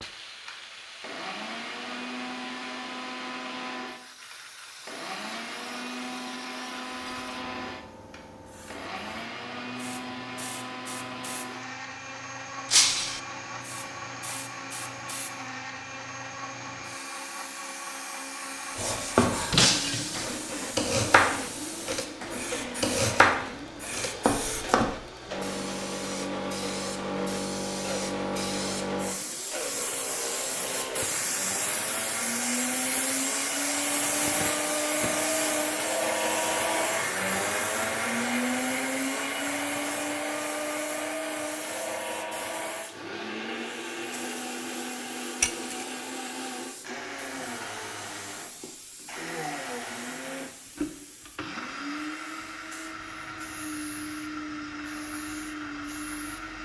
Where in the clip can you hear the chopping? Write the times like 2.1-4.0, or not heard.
18.8-24.9.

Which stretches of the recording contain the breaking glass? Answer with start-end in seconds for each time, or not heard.
12.7-13.2, 19.5-20.4, 45.4-45.9.